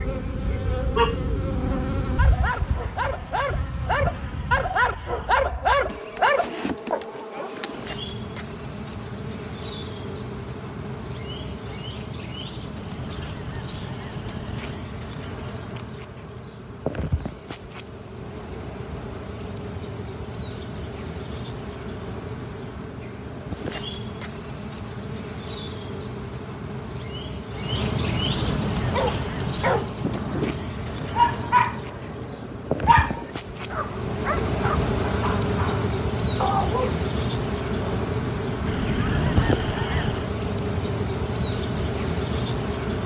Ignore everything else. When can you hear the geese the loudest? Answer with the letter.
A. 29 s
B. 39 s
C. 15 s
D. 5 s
B.